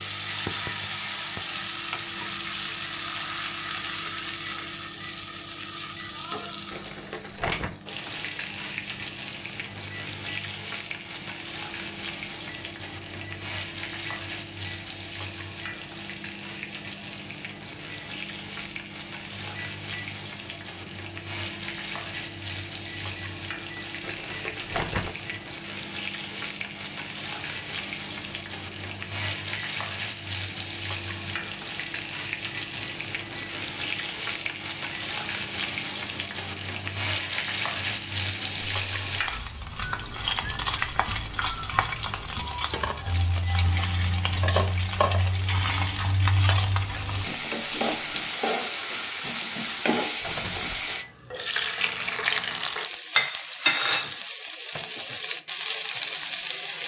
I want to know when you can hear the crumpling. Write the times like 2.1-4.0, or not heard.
6.7-7.8, 24.0-25.1, 49.6-50.9.